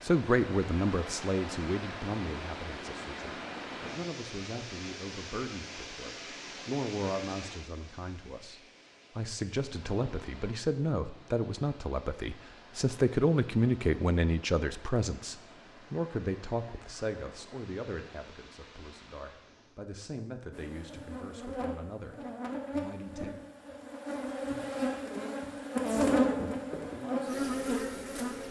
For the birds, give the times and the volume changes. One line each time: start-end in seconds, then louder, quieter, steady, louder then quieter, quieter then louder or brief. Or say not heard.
not heard.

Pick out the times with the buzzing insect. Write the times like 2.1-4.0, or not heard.
20.5-28.4.